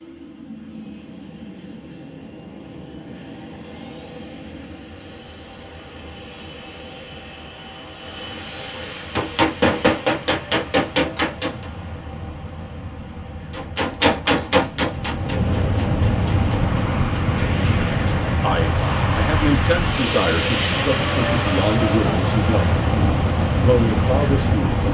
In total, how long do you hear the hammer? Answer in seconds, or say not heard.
8 s.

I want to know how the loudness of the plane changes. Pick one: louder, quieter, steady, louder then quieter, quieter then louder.
louder.